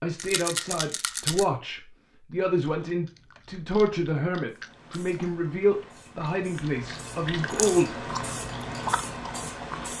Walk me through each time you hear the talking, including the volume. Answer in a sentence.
You can hear the talking from 0.0 to 8.1 s, at a steady volume.